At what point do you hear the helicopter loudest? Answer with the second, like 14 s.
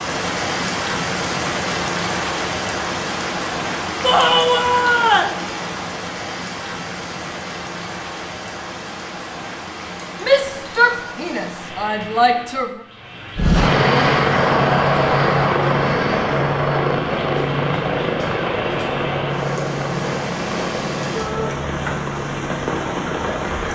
14 s.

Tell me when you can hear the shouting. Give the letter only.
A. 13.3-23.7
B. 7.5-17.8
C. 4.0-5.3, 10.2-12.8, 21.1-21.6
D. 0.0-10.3
C.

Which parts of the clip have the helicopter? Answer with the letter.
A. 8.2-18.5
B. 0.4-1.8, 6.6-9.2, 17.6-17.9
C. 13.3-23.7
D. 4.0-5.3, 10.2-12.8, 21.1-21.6
C.